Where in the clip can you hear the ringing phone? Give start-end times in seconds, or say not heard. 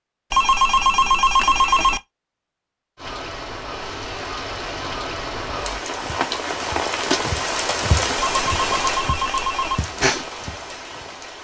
0.3-2.0, 8.2-9.8.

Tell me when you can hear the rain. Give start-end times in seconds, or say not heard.
3.0-11.3.